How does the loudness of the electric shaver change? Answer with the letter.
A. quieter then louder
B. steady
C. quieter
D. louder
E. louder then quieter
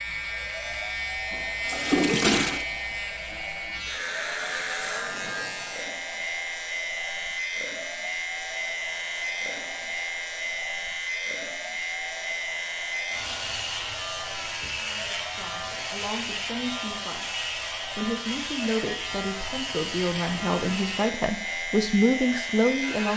B.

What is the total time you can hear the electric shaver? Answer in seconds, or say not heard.
23 s.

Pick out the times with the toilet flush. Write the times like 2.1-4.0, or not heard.
1.3-2.6.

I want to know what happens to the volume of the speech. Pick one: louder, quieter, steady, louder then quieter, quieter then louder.
louder.